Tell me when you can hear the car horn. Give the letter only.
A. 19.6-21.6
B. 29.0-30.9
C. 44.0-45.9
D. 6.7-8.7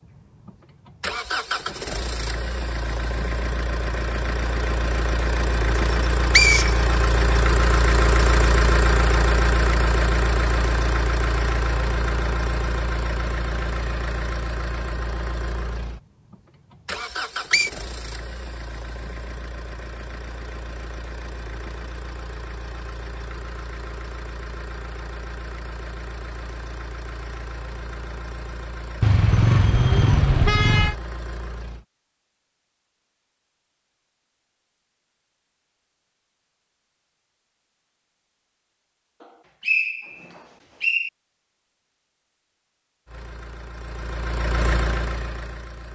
B.